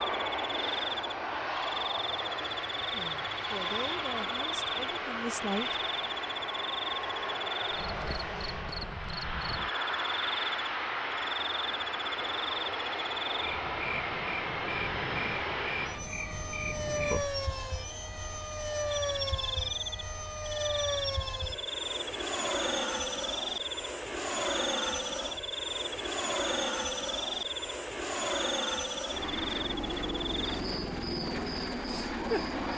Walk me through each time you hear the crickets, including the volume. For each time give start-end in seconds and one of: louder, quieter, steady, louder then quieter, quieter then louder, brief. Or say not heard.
0.0-32.7 steady.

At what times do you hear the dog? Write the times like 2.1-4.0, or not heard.
not heard.